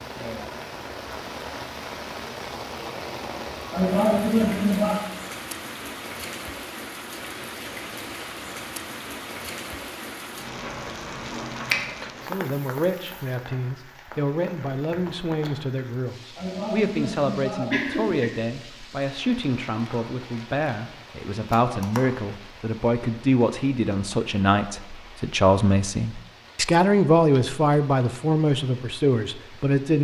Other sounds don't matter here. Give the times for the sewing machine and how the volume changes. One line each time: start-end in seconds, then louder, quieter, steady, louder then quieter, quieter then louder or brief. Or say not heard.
not heard.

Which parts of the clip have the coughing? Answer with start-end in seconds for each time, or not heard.
3.7-5.0, 16.4-18.3.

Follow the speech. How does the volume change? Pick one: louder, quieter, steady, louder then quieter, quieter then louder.
louder.